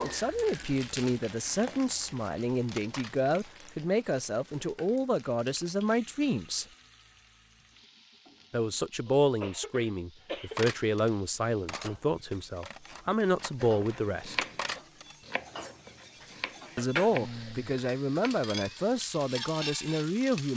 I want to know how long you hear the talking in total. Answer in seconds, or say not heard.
16 s.